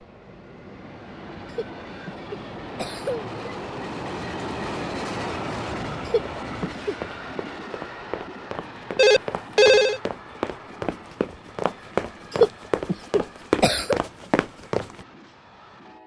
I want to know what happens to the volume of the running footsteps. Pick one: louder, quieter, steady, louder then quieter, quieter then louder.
louder.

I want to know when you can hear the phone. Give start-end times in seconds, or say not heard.
8.9-10.0.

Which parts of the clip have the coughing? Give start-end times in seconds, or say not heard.
1.5-3.3, 6.0-7.0, 12.3-14.0.